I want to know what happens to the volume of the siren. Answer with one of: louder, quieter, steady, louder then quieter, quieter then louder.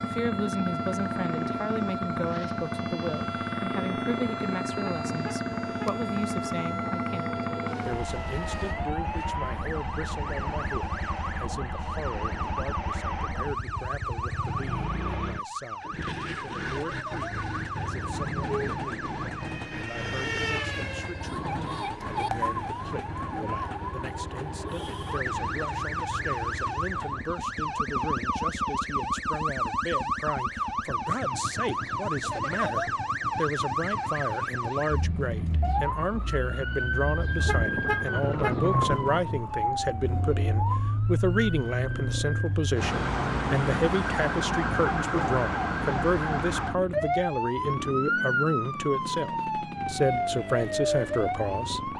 louder.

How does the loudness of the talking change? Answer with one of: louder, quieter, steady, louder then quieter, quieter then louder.
quieter then louder.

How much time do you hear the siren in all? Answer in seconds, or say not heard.
52 s.